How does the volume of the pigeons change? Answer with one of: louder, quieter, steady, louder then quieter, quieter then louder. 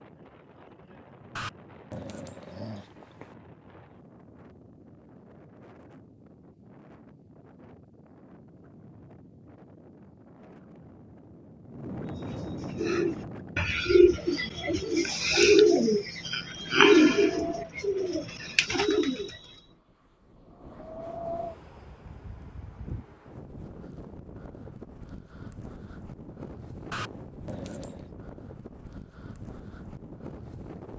louder then quieter.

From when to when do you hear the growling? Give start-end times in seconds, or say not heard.
1.4-3.4, 26.9-28.1.